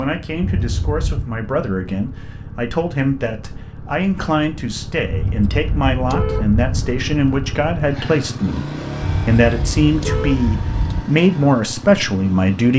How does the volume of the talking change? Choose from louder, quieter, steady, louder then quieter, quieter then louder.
louder.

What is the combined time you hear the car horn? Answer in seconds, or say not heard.
5 s.